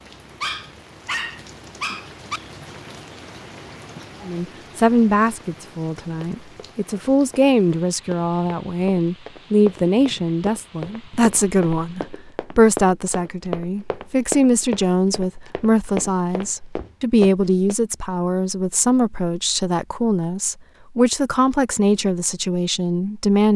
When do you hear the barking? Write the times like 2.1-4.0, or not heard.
0.4-2.4.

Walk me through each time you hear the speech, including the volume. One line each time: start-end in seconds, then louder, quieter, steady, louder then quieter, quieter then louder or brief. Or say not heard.
4.2-23.5 steady.